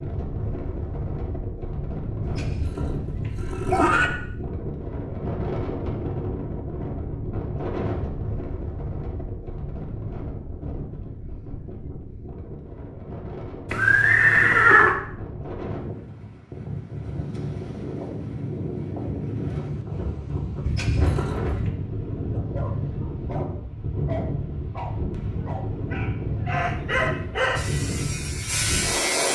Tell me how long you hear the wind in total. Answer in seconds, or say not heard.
29 s.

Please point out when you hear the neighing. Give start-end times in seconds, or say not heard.
2.2-4.1, 13.7-14.9, 20.6-21.7.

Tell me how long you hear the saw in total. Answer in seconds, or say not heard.
2 s.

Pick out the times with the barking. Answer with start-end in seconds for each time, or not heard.
22.3-27.7.